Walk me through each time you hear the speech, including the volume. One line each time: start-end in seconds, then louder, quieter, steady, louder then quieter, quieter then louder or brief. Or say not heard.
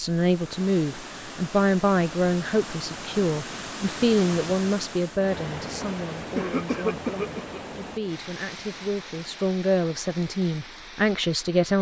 0.0-11.7 quieter then louder.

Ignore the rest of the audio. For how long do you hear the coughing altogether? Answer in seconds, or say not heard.
2 s.